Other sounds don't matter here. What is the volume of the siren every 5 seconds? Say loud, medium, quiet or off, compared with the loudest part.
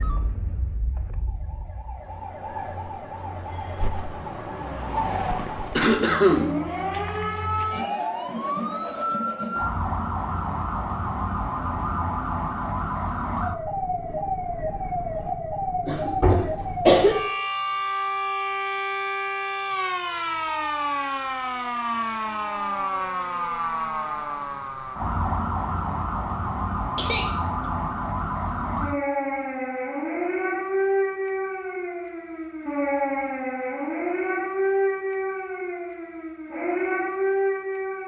medium, loud, loud, loud, loud, loud, loud, loud.